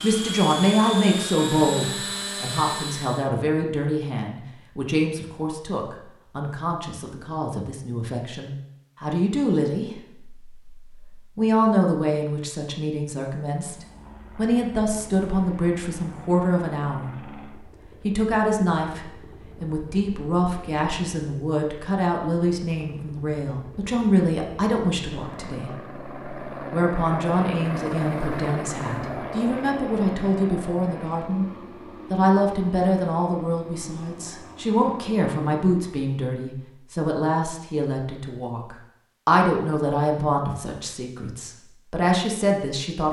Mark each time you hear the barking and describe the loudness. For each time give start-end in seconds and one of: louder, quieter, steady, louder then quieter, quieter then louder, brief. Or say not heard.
not heard.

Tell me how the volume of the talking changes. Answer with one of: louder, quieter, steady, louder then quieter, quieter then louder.
steady.